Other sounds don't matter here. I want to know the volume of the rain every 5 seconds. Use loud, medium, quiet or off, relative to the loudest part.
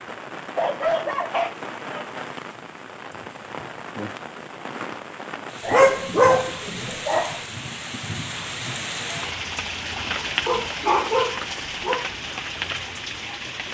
medium, loud, loud.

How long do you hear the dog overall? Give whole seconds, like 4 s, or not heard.
5 s.